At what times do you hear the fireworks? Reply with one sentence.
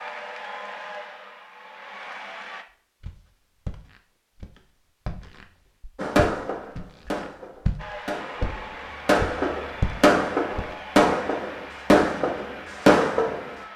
The fireworks can be heard from 6.0 to 13.6 s.